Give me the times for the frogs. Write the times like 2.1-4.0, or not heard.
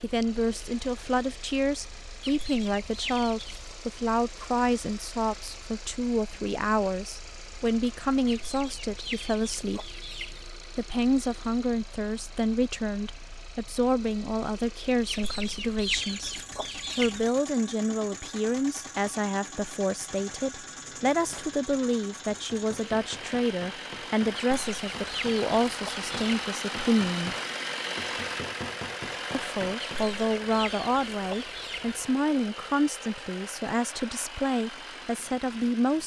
not heard.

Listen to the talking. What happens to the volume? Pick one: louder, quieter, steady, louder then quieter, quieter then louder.
steady.